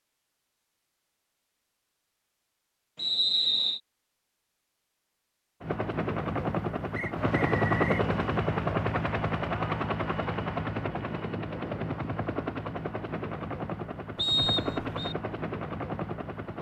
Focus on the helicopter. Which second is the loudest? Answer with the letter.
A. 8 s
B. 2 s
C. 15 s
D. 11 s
A.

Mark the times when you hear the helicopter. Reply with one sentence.
You can hear the helicopter from 5.6 to 16.5 s.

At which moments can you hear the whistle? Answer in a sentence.
You can hear the whistle from 3.0 to 3.8 s, from 7.0 to 8.1 s and from 14.2 to 15.2 s.